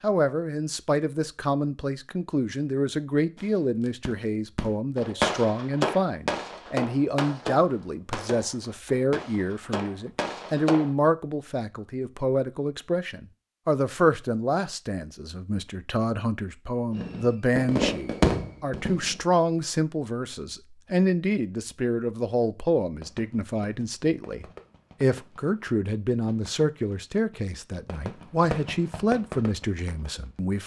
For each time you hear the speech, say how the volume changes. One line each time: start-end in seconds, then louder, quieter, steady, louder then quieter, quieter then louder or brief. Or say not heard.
0.0-30.6 steady.